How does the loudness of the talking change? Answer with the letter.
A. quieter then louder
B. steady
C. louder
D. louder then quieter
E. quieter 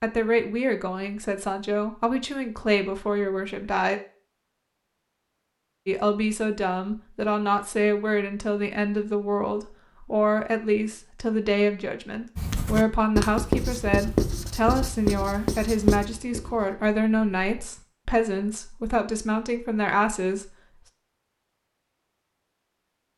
B.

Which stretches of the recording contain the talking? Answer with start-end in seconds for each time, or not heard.
0.0-4.0, 5.8-20.5.